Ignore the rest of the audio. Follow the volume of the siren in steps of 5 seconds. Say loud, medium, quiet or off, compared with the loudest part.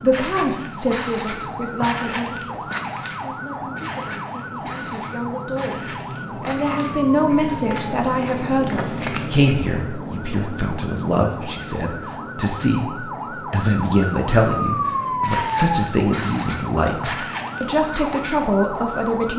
medium, medium, loud, loud.